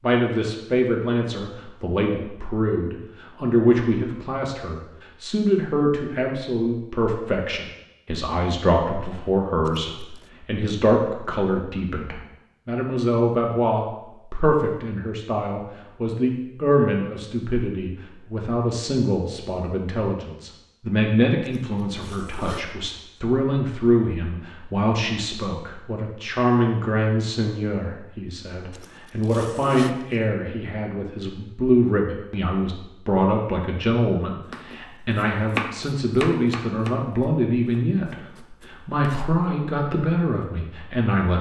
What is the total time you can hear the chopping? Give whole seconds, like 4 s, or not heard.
5 s.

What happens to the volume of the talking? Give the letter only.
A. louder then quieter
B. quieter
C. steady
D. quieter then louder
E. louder
C.